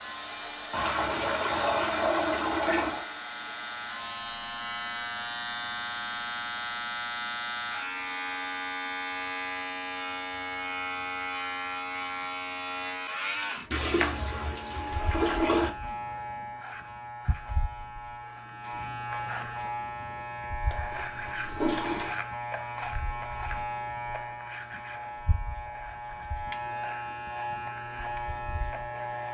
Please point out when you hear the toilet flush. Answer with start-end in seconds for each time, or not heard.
0.7-3.0, 13.7-15.7, 20.6-22.2.